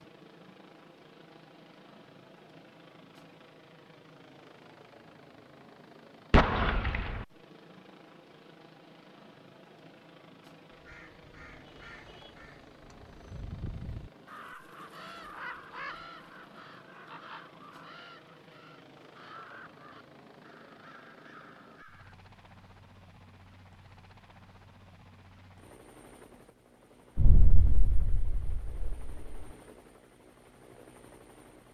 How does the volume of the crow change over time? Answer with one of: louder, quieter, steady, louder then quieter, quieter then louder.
louder then quieter.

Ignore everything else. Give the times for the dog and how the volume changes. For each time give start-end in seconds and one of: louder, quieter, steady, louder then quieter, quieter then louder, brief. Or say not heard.
not heard.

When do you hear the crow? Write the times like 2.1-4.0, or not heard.
10.7-22.1.